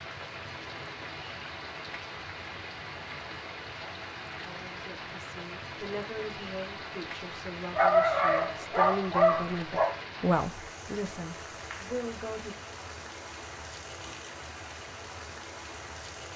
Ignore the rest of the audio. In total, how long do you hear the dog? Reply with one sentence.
You can hear the dog for 2 seconds altogether.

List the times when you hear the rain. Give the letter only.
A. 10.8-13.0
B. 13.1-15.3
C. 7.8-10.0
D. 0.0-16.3
D.